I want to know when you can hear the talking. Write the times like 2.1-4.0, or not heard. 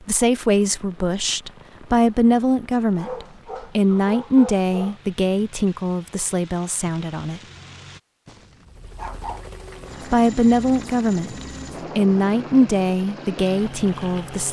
0.1-7.4, 10.1-14.4.